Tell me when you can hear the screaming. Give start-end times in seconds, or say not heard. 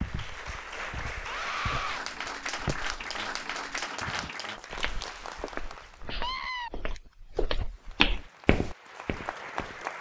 1.2-2.0, 6.0-6.7.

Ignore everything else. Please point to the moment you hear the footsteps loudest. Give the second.
8 s.